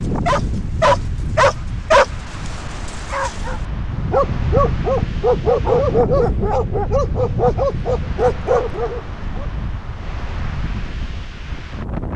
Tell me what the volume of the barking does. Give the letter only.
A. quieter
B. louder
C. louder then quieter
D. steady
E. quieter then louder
E.